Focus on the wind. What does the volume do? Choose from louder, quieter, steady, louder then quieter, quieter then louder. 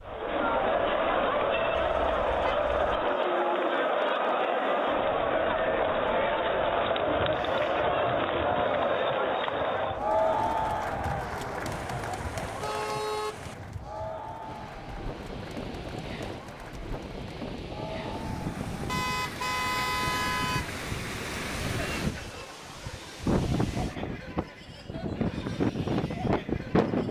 louder.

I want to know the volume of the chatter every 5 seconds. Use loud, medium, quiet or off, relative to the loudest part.
loud, loud, medium, quiet, quiet, quiet.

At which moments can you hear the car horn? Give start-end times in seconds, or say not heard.
1.7-3.0, 11.7-13.6, 18.9-20.7.